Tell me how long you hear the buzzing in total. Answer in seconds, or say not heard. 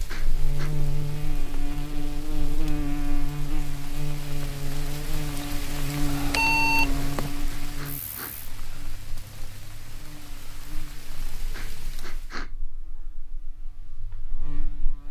15 s.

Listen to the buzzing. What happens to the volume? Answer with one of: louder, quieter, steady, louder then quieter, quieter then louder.
quieter.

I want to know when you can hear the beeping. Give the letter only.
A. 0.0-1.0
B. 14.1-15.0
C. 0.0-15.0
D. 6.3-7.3
D.